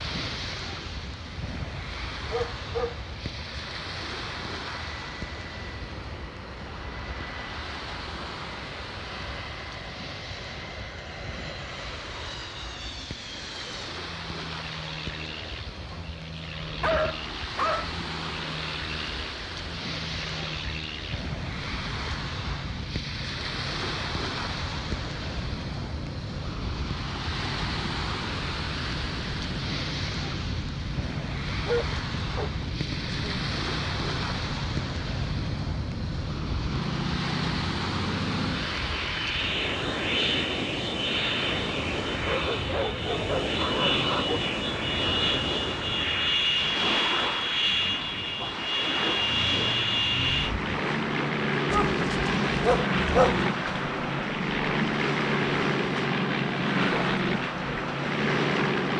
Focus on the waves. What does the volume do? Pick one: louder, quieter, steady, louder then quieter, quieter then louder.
louder.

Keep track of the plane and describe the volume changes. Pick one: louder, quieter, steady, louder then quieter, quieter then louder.
louder.